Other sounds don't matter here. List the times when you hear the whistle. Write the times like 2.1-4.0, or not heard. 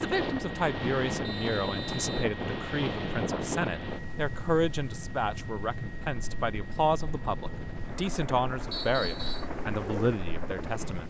1.2-2.4, 8.7-9.4.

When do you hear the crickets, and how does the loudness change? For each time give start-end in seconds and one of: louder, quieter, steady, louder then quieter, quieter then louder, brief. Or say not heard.
not heard.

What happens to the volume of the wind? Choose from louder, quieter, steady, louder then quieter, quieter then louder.
quieter then louder.